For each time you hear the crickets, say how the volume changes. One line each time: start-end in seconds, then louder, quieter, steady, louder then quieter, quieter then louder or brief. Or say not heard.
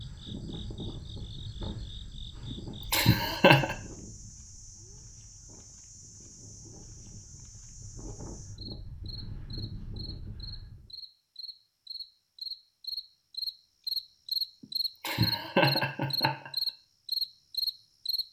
0.0-18.2 louder.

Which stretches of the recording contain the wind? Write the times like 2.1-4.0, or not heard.
0.0-10.9.